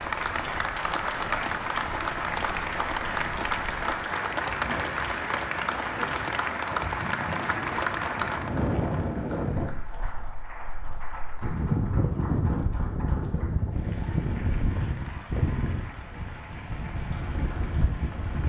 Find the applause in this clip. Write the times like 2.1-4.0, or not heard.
0.0-18.4.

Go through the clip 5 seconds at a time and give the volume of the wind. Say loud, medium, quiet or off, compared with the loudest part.
medium, loud, loud, loud.